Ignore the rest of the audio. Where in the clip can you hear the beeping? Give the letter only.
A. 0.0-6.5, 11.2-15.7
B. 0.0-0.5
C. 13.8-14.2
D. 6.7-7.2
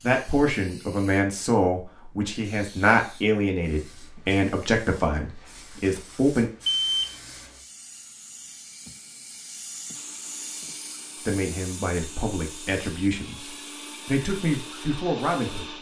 D.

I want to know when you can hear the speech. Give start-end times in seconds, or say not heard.
0.0-6.5, 11.2-15.7.